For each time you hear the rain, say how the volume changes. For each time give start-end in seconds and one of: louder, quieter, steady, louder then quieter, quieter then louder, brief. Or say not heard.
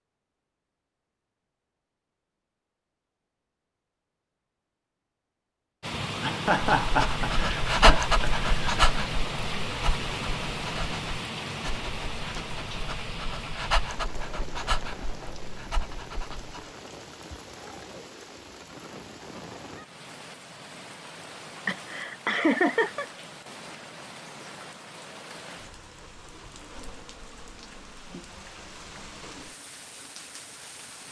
5.8-31.0 quieter.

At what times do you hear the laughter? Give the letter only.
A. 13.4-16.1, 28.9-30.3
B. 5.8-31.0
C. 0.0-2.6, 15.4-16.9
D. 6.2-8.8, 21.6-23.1
D.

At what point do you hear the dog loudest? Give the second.
8 s.